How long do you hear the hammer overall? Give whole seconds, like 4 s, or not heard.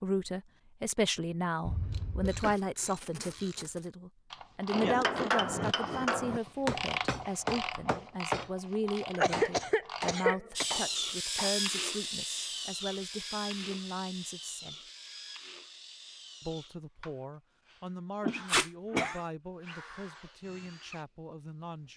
6 s.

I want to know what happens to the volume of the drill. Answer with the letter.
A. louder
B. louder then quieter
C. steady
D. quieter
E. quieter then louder
D.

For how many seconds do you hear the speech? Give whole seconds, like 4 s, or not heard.
20 s.